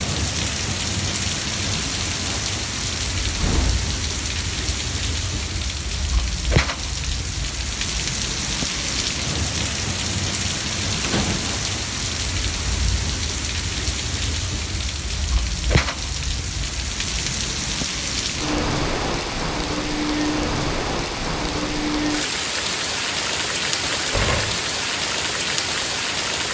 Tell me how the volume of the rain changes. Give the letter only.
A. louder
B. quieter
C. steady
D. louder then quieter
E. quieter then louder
C.